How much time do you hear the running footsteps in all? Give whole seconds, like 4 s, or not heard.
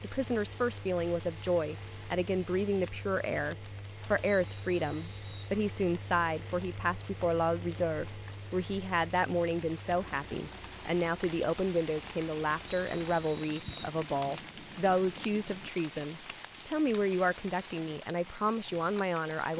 not heard.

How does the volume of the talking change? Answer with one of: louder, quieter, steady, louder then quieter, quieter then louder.
steady.